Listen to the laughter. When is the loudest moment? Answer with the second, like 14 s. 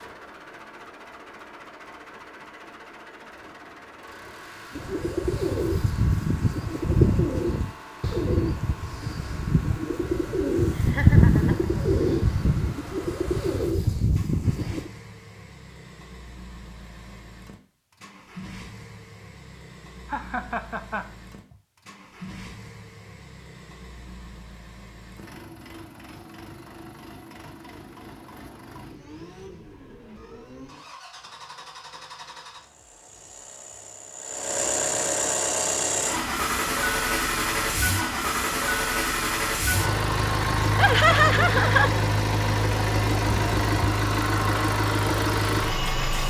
41 s.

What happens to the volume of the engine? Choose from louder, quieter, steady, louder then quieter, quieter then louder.
louder.